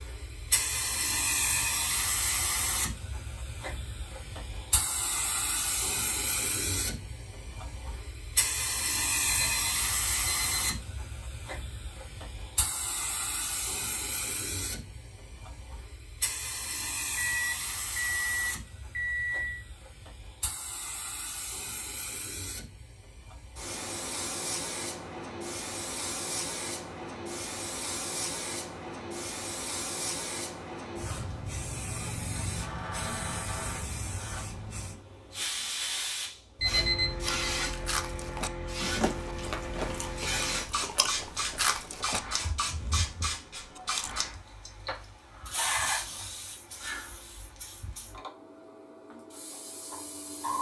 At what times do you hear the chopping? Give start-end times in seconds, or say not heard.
not heard.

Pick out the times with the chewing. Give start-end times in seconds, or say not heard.
37.2-44.2.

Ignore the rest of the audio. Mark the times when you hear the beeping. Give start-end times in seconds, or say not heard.
9.2-10.9, 17.1-19.6, 36.5-37.3.